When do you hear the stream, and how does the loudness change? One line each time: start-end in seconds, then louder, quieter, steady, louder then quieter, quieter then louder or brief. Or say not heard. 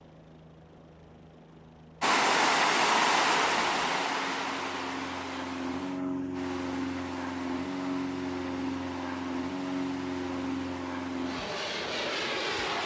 2.0-12.8 quieter.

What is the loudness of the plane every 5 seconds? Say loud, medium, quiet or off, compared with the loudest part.
quiet, loud, loud.